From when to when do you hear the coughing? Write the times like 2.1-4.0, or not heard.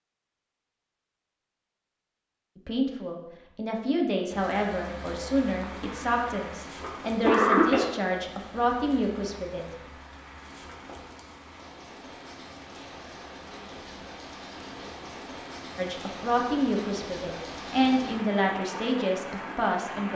5.6-7.8.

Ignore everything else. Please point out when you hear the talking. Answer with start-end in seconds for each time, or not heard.
2.5-9.7, 15.8-20.1.